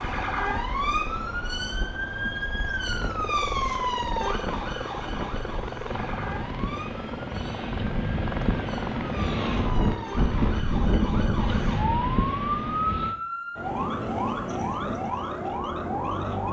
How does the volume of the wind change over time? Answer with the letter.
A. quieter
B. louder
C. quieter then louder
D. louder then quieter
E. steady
B.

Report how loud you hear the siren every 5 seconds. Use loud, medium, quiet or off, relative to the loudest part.
loud, medium, loud, loud.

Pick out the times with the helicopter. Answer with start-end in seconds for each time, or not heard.
0.0-10.7.